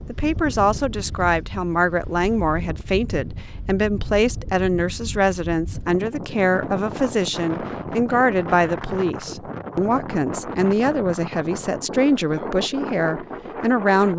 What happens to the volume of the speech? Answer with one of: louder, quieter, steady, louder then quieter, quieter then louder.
steady.